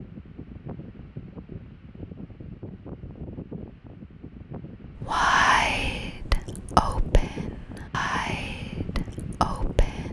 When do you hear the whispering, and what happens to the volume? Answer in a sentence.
The whispering can be heard from 5.0 to 10.0 s, getting quieter then louder.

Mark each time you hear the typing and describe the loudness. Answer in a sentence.
You can't hear the typing here.